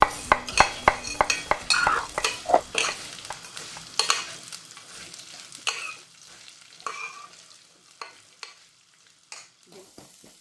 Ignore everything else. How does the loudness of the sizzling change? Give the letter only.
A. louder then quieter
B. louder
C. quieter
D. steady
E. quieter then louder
C.